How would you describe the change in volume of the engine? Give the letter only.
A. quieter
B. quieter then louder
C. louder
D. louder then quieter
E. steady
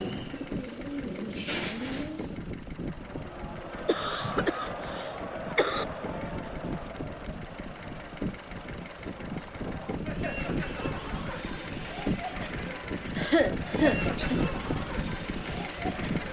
C.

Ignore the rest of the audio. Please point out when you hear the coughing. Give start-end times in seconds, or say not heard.
3.9-5.8, 13.2-14.4.